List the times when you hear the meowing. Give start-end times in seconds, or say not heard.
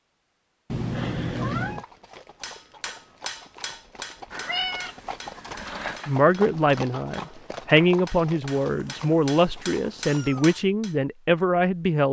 0.7-1.9, 4.3-6.2, 8.6-10.6.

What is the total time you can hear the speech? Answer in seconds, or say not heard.
6 s.